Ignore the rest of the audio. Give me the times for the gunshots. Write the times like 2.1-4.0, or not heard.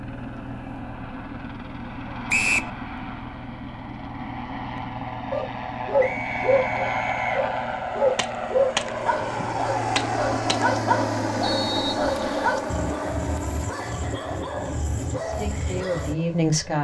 8.2-10.7.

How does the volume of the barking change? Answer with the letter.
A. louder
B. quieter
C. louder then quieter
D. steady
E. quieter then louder
B.